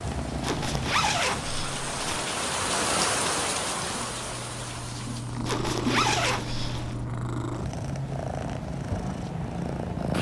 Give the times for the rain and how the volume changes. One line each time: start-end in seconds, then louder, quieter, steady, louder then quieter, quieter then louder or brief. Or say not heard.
0.0-5.5 louder then quieter.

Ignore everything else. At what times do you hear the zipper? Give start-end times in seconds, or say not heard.
0.4-2.2, 5.5-7.0.